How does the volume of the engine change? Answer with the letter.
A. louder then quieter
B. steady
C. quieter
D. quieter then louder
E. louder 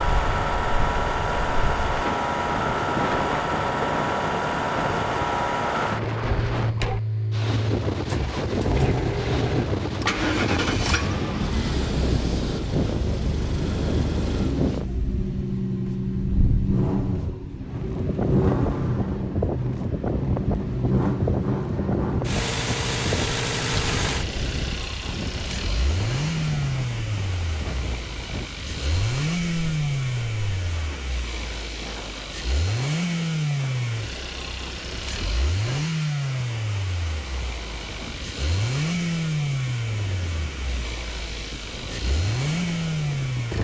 B.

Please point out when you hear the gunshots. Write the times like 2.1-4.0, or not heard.
not heard.